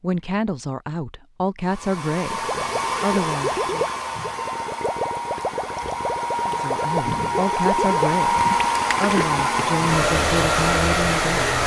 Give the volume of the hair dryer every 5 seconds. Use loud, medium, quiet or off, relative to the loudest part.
medium, loud, loud.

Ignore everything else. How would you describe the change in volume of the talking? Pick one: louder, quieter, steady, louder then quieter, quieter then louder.
steady.